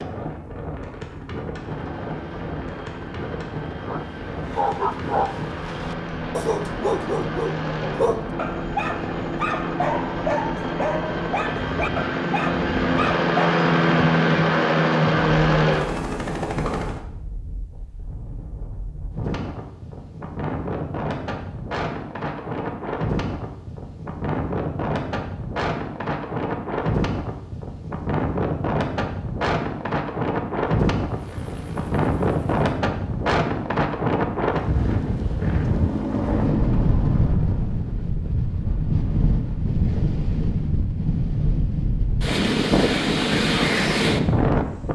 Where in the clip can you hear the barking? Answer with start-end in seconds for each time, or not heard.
3.9-13.7.